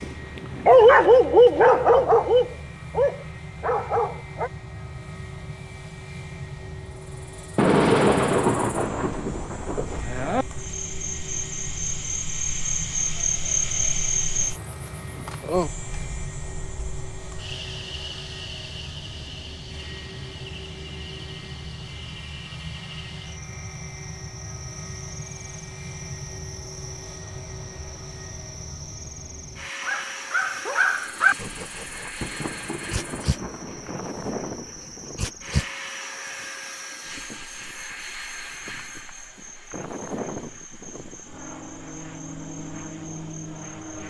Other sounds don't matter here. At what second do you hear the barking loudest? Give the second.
1 s.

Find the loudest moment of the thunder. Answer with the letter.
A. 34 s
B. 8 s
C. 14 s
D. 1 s
B.